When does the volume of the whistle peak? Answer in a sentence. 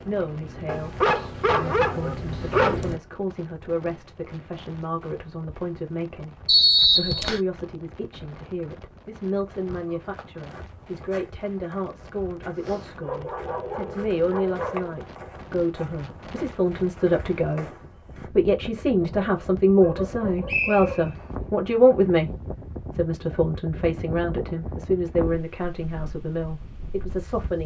The volume of the whistle peaks at 7 seconds.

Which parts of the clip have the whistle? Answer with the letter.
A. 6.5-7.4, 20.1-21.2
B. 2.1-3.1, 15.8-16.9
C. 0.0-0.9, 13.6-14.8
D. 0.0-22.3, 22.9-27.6
A.